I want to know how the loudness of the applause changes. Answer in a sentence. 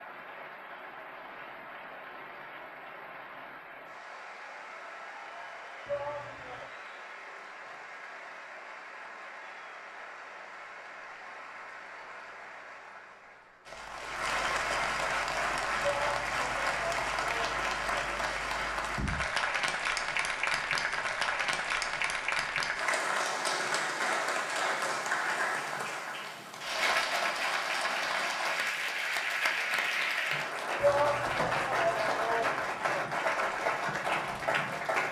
The loudness of the applause goes up.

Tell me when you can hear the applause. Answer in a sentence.
The applause can be heard from 0.0 to 35.0 s.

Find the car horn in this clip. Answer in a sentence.
The car horn can't be heard in this clip.